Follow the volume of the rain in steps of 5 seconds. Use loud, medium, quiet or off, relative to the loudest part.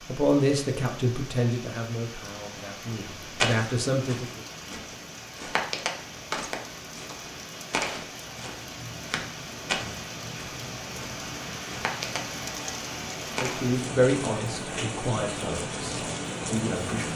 medium, medium, loud, loud.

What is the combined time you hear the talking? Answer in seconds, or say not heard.
8 s.